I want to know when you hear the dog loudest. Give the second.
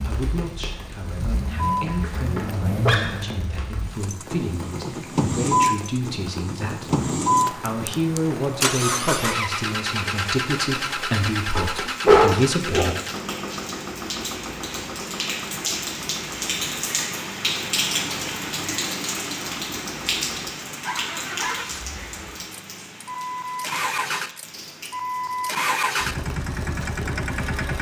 12 s.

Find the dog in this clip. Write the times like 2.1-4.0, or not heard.
1.6-3.6, 11.6-13.1, 20.8-21.6.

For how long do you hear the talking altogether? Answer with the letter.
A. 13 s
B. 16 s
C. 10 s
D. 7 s
A.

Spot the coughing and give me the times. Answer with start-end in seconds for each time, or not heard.
not heard.